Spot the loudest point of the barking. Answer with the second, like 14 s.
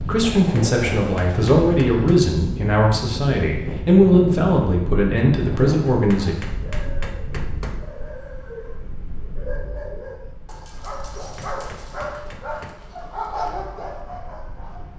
13 s.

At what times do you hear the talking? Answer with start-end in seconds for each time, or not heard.
0.0-6.3.